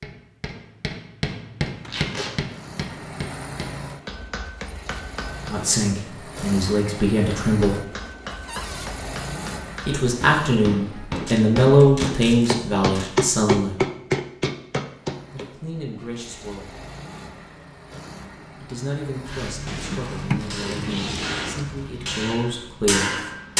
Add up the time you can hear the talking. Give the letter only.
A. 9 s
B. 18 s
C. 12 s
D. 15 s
C.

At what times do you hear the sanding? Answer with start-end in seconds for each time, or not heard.
not heard.